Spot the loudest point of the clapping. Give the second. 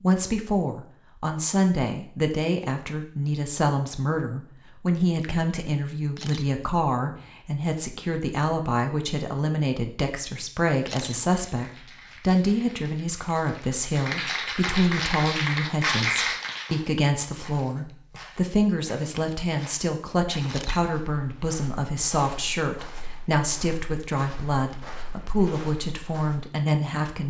16 s.